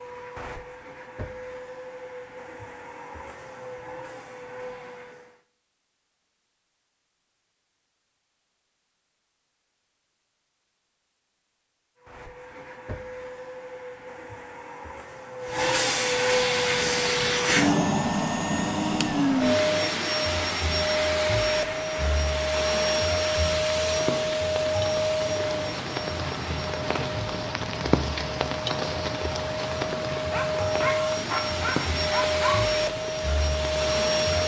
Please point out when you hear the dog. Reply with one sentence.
The dog can be heard from 30.1 to 32.6 s.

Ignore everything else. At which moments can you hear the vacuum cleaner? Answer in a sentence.
The vacuum cleaner can be heard from 0.0 to 5.4 s and from 12.0 to 34.4 s.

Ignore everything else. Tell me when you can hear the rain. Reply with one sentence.
The rain can be heard from 16.5 to 34.4 s.